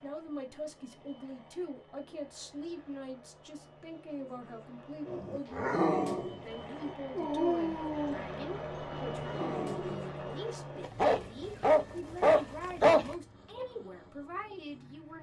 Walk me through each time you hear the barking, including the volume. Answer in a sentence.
You can hear the barking from 5.0 to 13.1 s, getting quieter then louder.